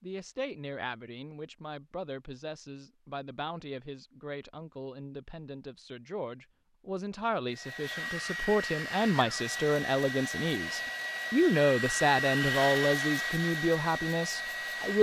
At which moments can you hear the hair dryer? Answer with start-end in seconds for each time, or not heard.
7.5-14.9.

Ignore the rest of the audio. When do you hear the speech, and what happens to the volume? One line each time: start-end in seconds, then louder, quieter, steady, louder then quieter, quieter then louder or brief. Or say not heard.
0.0-14.9 louder.